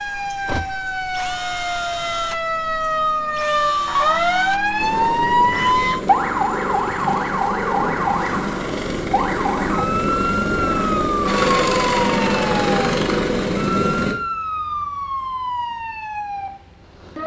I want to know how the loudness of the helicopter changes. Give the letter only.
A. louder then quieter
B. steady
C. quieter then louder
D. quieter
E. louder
E.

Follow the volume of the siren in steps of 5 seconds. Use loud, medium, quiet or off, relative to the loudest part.
loud, loud, loud, medium.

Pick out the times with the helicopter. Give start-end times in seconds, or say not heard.
4.8-14.2.